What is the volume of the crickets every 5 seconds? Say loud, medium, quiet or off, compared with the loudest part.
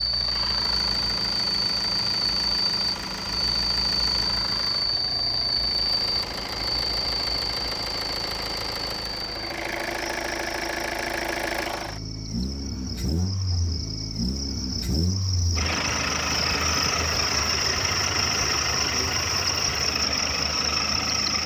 loud, loud, quiet, loud, loud.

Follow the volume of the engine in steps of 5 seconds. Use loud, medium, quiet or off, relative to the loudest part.
medium, medium, loud, loud, loud.